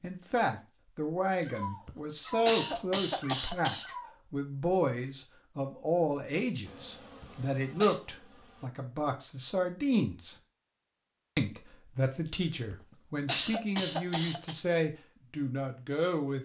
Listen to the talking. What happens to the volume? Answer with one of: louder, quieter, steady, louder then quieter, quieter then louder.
steady.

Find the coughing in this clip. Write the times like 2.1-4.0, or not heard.
1.4-3.9, 6.8-8.0, 12.2-14.6.